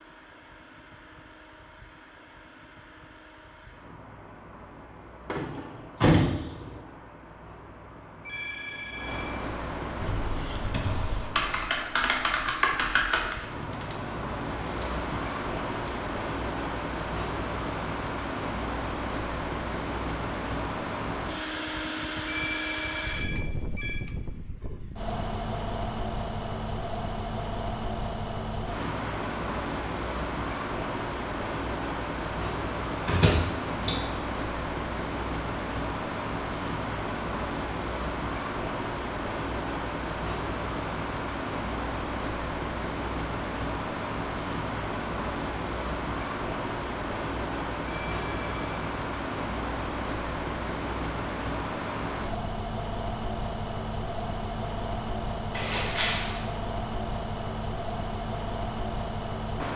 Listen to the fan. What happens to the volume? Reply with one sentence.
The loudness of the fan goes up.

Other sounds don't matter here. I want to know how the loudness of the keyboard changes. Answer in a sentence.
The loudness of the keyboard goes up, then down.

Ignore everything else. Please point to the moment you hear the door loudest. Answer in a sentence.
The volume of the door peaks at 6 seconds.